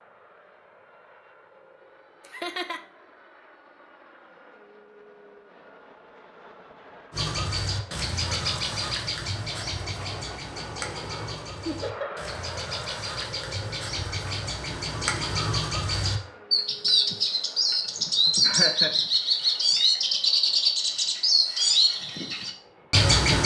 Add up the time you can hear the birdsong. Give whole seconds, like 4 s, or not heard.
16 s.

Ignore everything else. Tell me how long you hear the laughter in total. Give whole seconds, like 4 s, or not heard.
2 s.